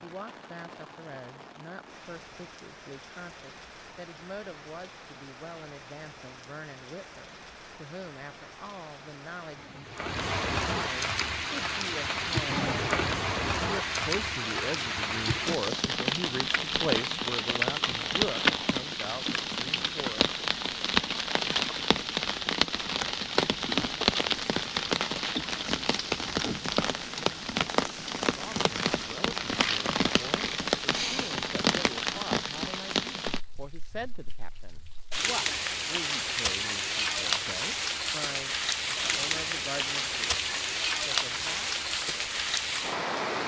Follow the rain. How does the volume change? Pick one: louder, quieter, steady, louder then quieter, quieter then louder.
louder.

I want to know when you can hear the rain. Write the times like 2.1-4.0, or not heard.
0.0-43.4.